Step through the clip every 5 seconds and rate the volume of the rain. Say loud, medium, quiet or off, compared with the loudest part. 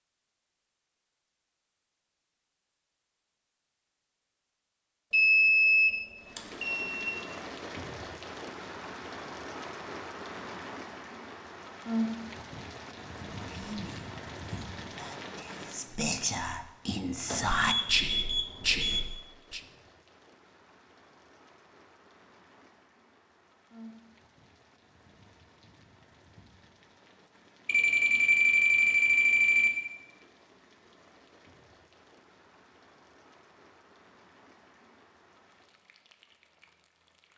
off, loud, loud, medium, quiet, quiet, quiet, quiet.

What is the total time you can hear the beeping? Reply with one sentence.
You can hear the beeping for 6 seconds altogether.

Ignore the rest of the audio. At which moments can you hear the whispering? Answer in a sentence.
You can hear the whispering from 13.3 to 19.6 s.